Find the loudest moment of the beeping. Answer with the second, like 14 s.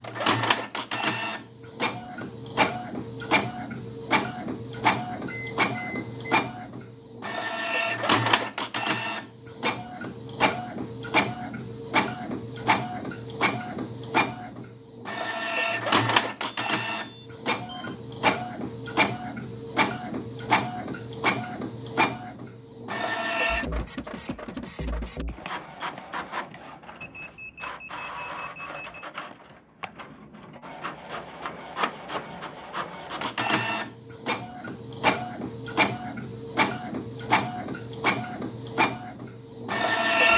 18 s.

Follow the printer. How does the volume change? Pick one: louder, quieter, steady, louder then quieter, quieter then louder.
quieter then louder.